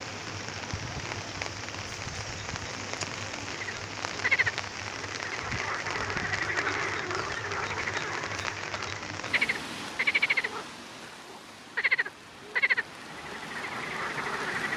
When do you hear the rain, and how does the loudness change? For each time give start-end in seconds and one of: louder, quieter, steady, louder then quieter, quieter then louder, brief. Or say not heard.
0.0-14.7 quieter.